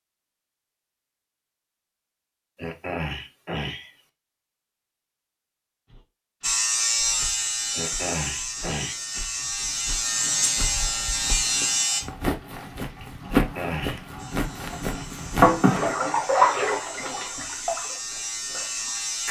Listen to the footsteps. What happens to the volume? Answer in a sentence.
The volume of the footsteps goes up, then down.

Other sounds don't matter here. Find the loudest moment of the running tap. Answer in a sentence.
The loudest moment of the running tap is at 16 seconds.